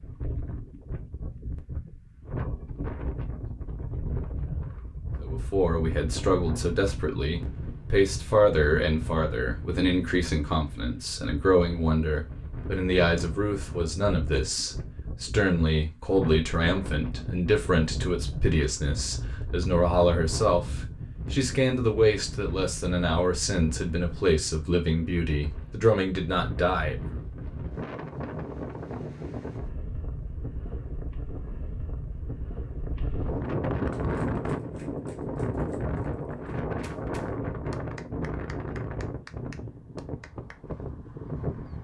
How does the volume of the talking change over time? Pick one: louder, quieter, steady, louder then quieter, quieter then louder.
steady.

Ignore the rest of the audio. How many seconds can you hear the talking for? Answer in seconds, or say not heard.
22 s.